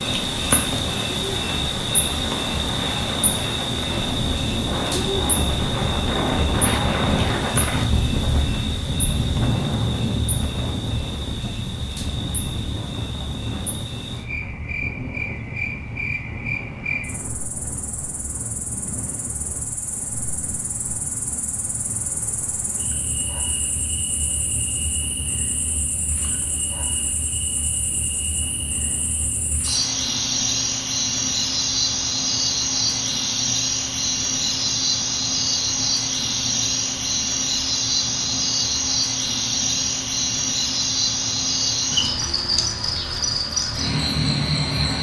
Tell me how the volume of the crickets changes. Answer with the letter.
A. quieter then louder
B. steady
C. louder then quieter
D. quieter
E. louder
A.